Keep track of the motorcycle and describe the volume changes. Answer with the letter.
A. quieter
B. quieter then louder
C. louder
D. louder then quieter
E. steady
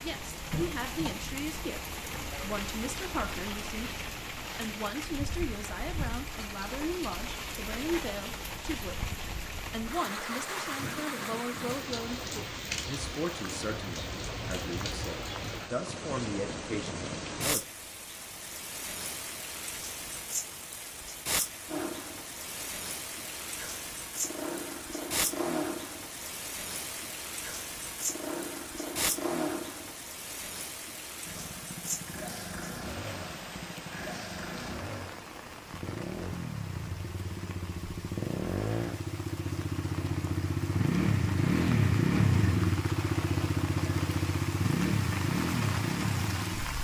C.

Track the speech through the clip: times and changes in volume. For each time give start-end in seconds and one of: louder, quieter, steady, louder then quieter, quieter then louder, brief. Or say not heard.
0.0-17.6 steady.